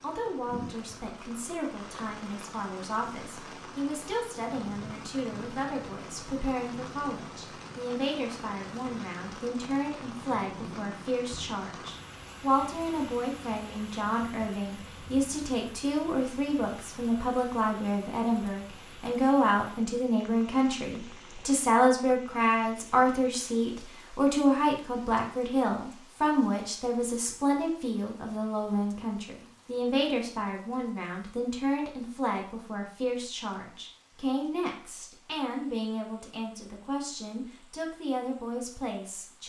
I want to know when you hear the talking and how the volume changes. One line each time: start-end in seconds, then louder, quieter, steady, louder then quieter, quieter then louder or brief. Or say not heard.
0.0-39.4 louder then quieter.